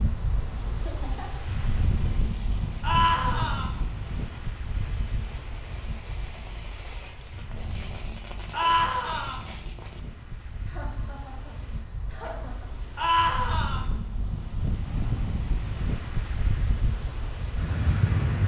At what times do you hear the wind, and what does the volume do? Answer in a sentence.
The wind can be heard from 0.0 to 18.4 s, getting quieter then louder.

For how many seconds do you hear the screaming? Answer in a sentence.
The screaming can be heard for 3 seconds in total.